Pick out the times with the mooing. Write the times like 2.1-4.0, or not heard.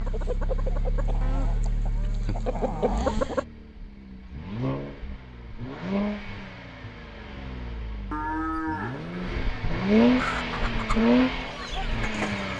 1.2-3.2, 8.1-9.4.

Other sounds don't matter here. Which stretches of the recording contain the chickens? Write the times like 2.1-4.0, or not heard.
0.0-3.5, 10.2-12.5.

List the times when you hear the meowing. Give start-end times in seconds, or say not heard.
not heard.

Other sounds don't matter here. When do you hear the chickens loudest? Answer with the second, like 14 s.
3 s.